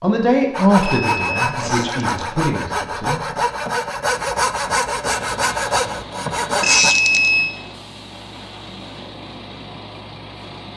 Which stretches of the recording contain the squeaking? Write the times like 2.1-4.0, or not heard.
1.6-2.2, 6.6-7.3.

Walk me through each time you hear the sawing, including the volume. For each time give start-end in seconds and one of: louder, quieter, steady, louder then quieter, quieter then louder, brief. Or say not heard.
0.5-7.0 steady.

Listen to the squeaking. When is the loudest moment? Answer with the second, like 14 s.
7 s.